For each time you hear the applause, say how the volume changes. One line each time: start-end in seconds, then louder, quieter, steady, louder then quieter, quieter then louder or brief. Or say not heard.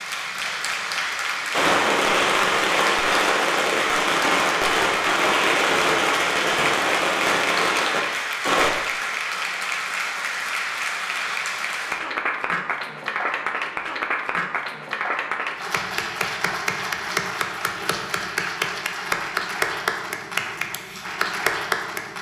0.0-22.1 steady.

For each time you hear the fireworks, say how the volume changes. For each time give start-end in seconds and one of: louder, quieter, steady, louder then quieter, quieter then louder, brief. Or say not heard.
1.5-8.7 steady.